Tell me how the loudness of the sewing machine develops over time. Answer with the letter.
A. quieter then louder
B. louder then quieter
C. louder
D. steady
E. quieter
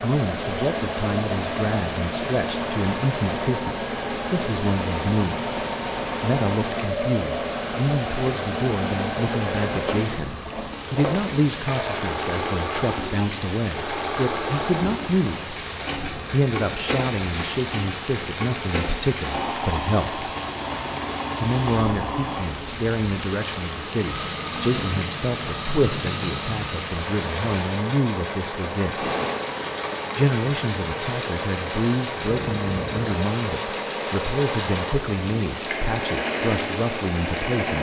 D.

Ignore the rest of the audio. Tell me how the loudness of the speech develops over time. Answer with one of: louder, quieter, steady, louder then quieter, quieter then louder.
steady.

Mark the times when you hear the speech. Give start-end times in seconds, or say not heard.
0.0-5.5, 6.2-15.6, 16.3-20.2, 21.4-29.1, 30.1-37.7.